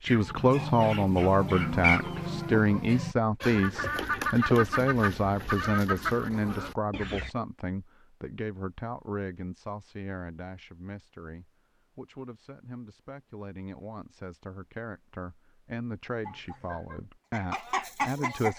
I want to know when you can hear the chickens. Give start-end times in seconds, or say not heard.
0.1-7.3, 16.2-18.5.